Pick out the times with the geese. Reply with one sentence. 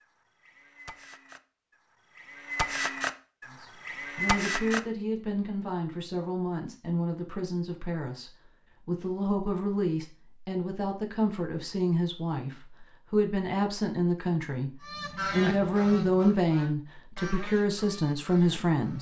The geese can be heard from 0.0 to 4.8 s and from 14.8 to 18.9 s.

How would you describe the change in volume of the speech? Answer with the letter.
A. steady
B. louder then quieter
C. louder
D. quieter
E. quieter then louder
C.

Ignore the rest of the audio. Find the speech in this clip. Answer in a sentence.
The speech can be heard from 3.5 to 18.9 s.